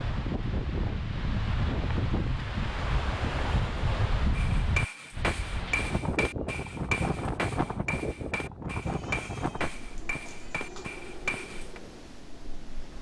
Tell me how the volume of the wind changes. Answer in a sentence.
The volume of the wind goes down.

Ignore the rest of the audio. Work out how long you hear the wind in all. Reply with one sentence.
The wind can be heard for 13 seconds in total.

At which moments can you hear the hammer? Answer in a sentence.
The hammer can be heard from 4.3 to 11.8 s.